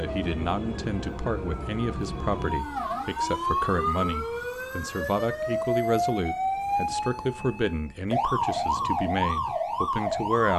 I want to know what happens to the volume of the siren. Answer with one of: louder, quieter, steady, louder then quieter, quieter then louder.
louder.